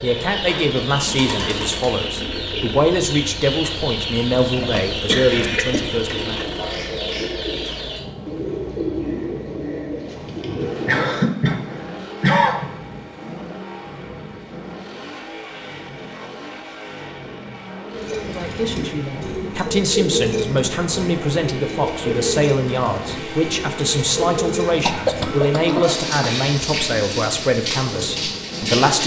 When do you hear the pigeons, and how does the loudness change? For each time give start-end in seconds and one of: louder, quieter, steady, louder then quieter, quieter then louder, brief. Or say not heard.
0.0-11.2 steady
17.9-29.0 steady.